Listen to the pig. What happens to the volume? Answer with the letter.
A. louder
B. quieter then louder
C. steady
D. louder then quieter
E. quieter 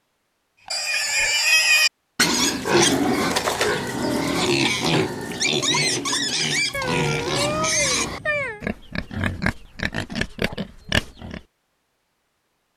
E.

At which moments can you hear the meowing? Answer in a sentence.
The meowing can be heard from 0.9 to 1.4 s and from 6.7 to 8.6 s.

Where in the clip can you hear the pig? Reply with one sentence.
You can hear the pig from 0.7 to 11.4 s.